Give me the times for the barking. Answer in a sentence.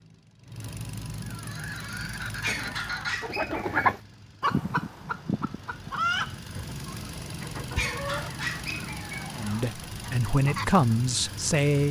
You can hear the barking from 2.4 to 3.8 s and from 7.8 to 9.7 s.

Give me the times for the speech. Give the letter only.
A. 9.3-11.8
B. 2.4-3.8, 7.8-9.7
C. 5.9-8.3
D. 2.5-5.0
A.